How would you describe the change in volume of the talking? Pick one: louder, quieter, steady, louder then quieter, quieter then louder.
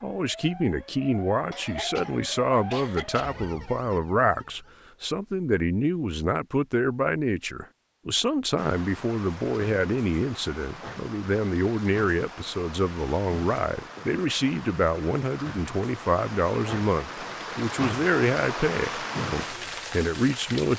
steady.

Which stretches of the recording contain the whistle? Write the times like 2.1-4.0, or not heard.
not heard.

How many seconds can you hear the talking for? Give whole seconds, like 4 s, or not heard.
21 s.